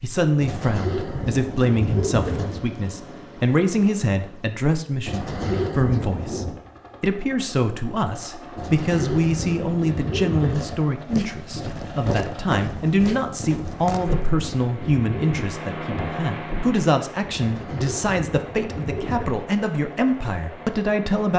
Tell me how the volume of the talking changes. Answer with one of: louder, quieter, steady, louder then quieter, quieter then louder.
steady.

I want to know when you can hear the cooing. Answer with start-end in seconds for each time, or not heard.
0.4-2.6, 5.0-6.6, 8.6-10.8, 13.6-15.4, 17.3-19.4.